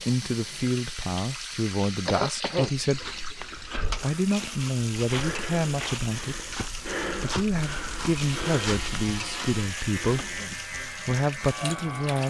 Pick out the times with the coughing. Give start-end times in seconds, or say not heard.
2.0-3.4, 10.2-10.7.